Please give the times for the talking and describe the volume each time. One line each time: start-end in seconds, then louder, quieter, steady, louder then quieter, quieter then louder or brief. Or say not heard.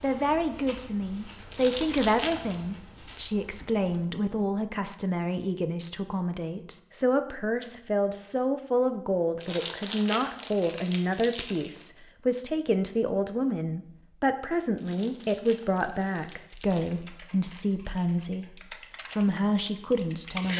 0.0-20.5 steady.